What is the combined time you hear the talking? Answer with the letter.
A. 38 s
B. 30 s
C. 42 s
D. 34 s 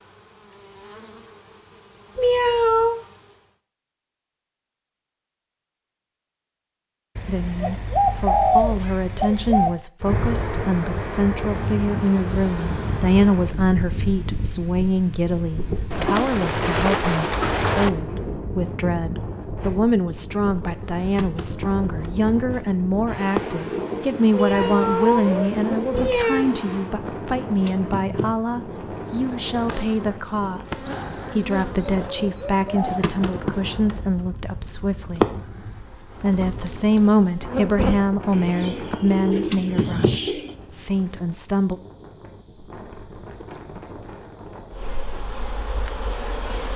D.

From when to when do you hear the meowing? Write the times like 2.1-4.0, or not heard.
2.1-3.0, 24.3-26.4.